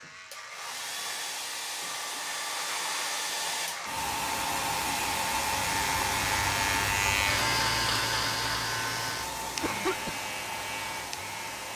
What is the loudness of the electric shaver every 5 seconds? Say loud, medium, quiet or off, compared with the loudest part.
medium, loud, medium.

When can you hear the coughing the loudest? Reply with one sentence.
The loudest moment of the coughing is at 10 seconds.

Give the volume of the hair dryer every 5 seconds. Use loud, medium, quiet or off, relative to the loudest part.
loud, loud, medium.